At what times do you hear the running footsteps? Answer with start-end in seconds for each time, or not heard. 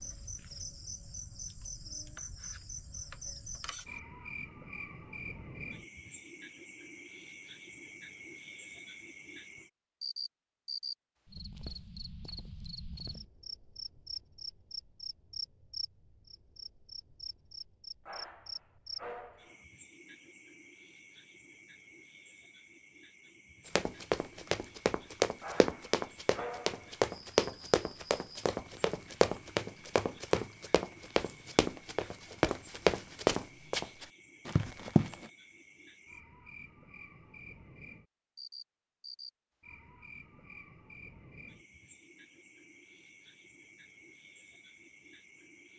23.8-35.3.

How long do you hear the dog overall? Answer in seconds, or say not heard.
3 s.